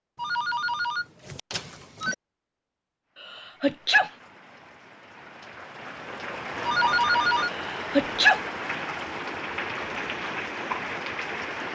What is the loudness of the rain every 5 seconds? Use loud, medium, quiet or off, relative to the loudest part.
quiet, loud, loud.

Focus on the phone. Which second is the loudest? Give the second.
7 s.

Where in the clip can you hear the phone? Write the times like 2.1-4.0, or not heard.
0.1-2.1, 6.7-7.5.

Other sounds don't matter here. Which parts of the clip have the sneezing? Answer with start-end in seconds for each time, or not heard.
3.2-4.1, 7.5-8.4.